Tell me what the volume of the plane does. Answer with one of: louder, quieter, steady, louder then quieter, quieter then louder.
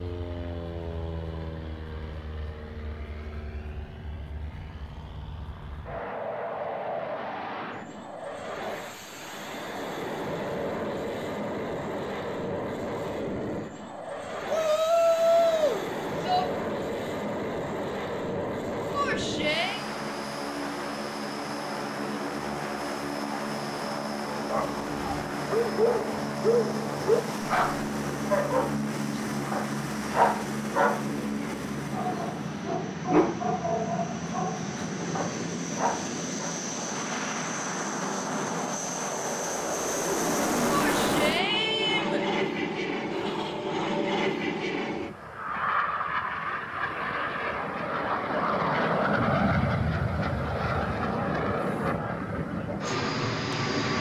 louder.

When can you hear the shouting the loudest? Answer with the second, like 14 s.
15 s.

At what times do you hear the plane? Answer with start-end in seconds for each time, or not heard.
0.0-53.9.